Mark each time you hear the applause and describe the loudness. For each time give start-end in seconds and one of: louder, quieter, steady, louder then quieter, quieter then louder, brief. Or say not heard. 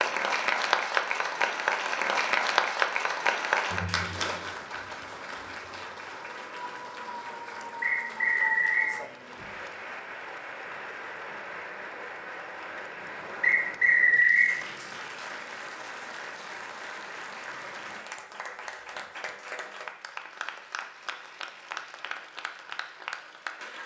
0.0-23.8 quieter.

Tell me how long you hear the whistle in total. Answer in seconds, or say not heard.
2 s.